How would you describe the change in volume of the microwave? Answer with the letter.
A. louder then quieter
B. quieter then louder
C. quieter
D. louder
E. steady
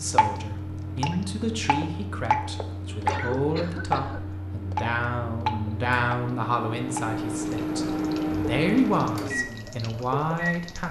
D.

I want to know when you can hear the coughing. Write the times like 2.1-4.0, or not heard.
3.0-4.3.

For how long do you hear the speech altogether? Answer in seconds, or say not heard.
11 s.